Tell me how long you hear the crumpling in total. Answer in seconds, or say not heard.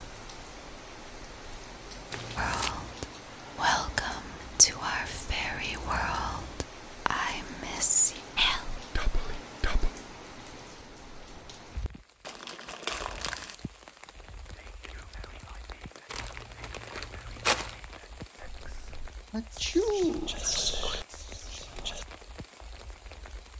4 s.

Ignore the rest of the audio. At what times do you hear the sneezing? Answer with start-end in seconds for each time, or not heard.
19.3-20.4.